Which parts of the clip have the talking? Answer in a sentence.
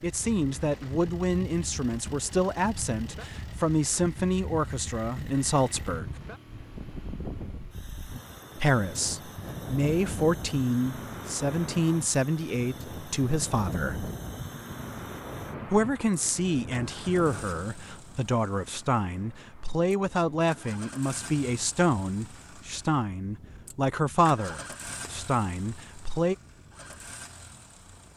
The talking can be heard from 0.0 to 6.2 s, from 8.6 to 14.1 s and from 15.7 to 26.4 s.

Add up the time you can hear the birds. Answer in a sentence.
You can't hear the birds here.